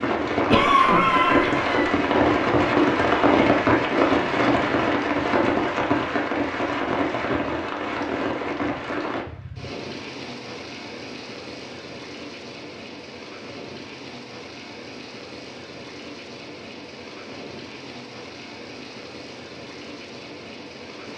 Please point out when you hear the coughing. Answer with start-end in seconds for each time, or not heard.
0.5-1.9.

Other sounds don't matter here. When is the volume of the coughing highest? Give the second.
1 s.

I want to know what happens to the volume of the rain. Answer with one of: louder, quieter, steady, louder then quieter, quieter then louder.
quieter.